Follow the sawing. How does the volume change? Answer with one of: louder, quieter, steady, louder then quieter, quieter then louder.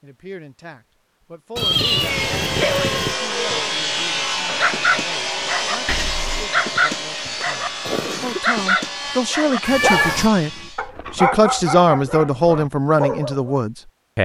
quieter.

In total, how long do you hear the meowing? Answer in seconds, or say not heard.
3 s.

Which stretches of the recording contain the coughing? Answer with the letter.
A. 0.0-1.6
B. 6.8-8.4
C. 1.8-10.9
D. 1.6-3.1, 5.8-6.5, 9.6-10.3
B.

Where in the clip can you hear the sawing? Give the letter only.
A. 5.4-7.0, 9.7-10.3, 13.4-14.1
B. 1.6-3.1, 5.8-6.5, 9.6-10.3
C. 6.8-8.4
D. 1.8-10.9
D.